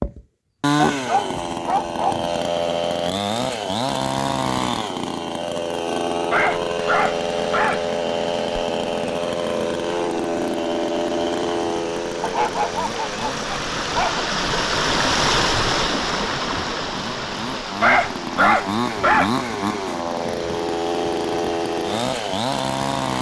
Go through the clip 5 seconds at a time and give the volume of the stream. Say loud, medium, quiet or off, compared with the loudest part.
off, quiet, loud, loud, quiet.